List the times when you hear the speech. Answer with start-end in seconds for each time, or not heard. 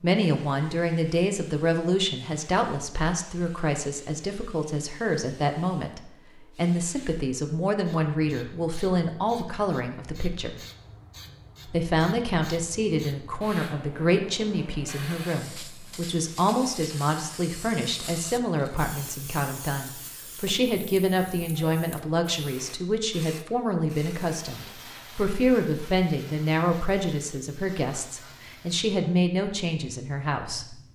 0.0-10.6, 11.7-30.8.